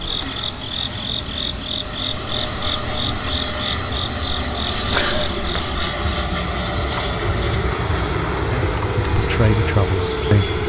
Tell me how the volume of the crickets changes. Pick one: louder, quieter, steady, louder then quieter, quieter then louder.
steady.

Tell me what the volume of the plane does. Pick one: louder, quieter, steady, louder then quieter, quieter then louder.
louder.